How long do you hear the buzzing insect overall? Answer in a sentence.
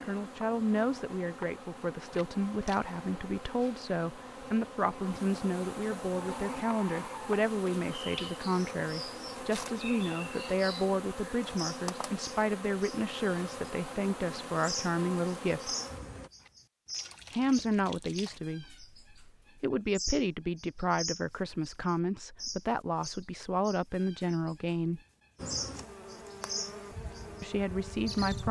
The buzzing insect can be heard for 19 seconds in total.